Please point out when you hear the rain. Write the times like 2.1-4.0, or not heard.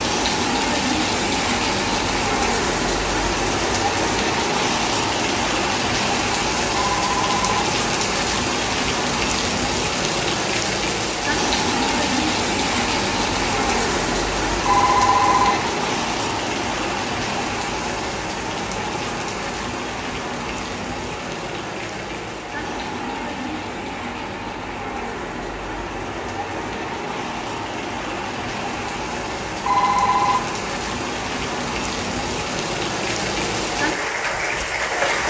0.0-35.2.